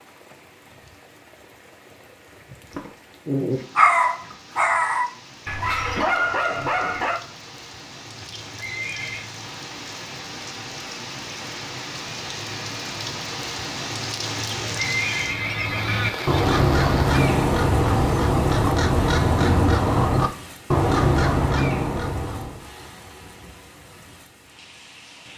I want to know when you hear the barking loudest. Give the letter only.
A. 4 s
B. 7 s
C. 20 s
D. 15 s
A.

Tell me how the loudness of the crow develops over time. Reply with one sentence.
The loudness of the crow stays about the same.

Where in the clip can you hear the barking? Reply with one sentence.
The barking can be heard from 2.7 to 7.2 s.